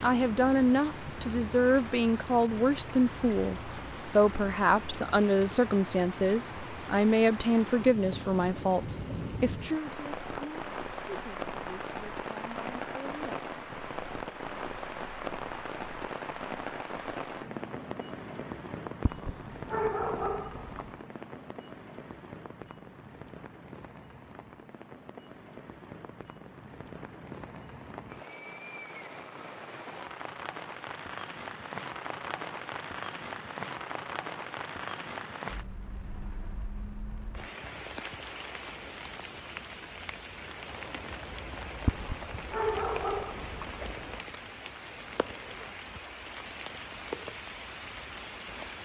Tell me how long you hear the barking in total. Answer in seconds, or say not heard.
4 s.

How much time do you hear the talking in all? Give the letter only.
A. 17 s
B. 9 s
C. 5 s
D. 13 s
D.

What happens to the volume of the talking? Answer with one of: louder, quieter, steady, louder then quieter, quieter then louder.
quieter.